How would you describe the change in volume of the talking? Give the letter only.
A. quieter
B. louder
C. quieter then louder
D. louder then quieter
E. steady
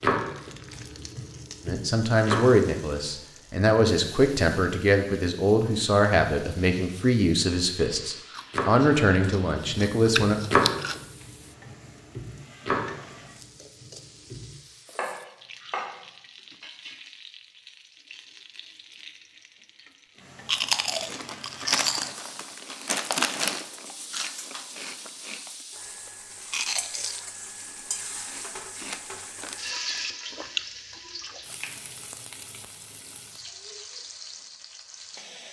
E.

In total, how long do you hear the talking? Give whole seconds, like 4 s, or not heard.
9 s.